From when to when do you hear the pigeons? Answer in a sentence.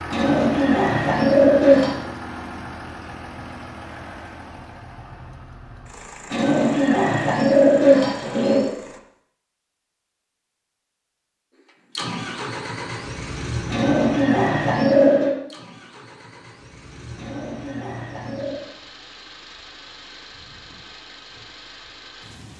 The pigeons can be heard from 0.1 to 1.9 s, from 6.3 to 8.7 s, from 13.7 to 15.3 s and from 17.1 to 18.6 s.